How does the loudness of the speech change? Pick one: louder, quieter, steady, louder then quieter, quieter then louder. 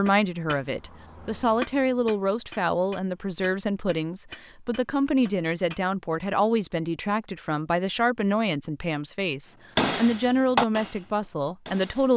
steady.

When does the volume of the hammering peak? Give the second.
10 s.